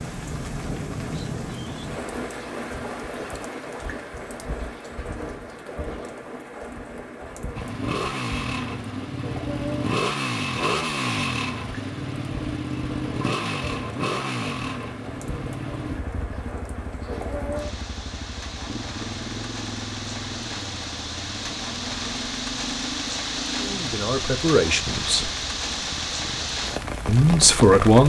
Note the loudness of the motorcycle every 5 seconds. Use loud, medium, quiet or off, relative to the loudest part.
off, loud, loud, medium, medium, quiet.